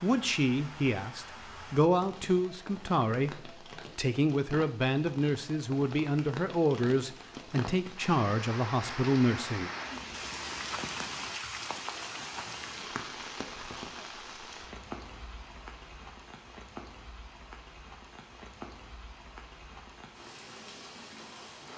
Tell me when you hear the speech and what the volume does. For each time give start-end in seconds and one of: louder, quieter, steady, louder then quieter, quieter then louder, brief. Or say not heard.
0.0-9.7 steady.